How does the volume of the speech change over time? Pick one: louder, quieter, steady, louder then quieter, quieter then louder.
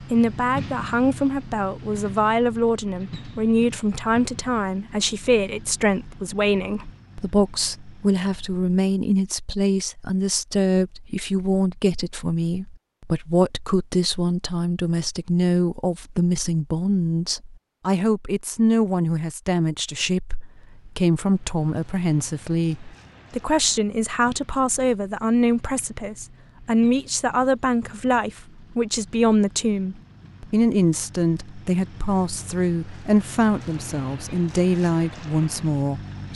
steady.